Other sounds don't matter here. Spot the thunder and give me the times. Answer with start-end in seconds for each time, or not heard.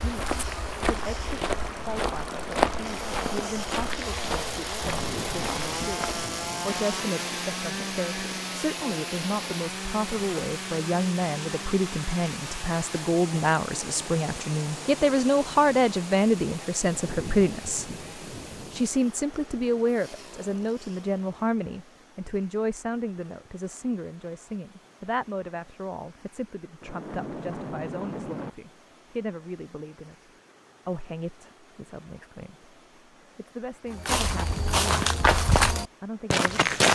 4.8-6.8, 16.9-18.9, 26.8-28.5.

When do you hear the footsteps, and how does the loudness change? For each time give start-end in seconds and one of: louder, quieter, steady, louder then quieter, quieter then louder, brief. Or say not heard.
0.0-6.2 louder then quieter
33.9-36.8 brief.